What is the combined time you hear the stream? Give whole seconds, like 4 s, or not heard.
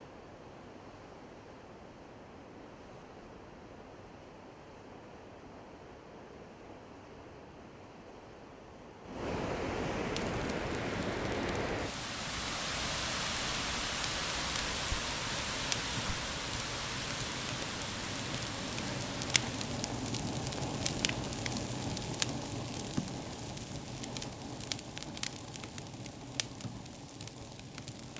20 s.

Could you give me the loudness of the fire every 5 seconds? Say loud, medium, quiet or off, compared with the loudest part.
off, off, medium, loud, loud, medium.